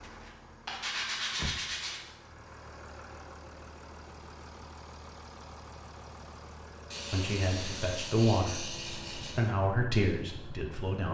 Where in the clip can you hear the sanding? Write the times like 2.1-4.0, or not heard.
0.1-2.0, 6.9-9.5.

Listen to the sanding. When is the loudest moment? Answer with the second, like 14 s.
1 s.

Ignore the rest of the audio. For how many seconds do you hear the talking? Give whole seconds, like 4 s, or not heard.
4 s.